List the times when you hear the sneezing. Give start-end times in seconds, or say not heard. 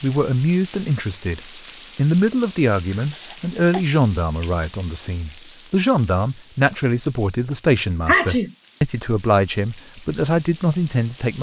3.1-3.9, 8.1-8.5.